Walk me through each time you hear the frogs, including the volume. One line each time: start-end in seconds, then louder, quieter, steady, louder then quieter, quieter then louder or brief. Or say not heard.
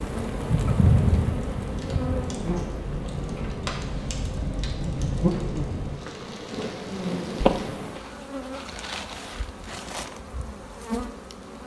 not heard.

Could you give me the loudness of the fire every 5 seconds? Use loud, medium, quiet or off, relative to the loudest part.
loud, loud, off.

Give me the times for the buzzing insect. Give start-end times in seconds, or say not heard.
0.0-11.6.